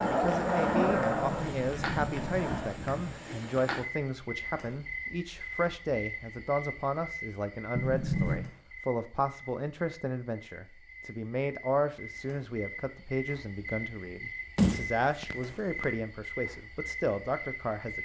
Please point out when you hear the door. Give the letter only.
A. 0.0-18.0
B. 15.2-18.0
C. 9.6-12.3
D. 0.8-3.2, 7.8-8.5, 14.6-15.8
D.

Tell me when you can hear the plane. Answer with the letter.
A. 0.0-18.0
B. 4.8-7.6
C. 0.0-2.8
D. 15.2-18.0
C.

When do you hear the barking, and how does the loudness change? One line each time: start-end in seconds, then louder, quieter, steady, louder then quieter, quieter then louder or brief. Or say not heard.
not heard.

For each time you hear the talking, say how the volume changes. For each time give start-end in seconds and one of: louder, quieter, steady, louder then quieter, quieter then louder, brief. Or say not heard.
0.0-18.0 steady.